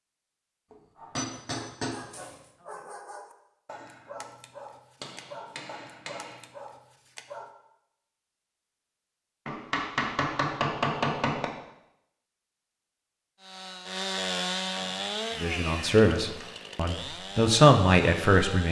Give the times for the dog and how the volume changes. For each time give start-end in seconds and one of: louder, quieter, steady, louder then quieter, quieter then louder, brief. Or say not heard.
0.9-7.5 steady.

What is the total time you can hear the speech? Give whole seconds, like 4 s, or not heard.
3 s.